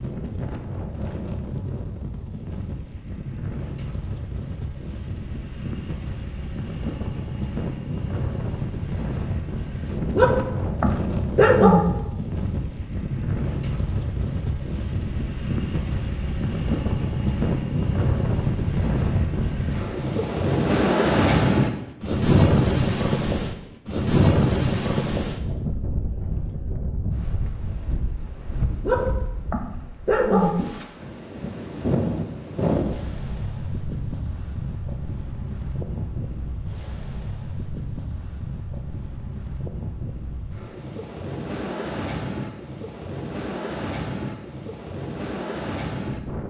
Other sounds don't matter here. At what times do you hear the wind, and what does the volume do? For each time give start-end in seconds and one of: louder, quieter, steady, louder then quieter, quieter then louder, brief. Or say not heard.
0.0-46.4 louder then quieter.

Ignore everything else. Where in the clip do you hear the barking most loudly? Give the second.
12 s.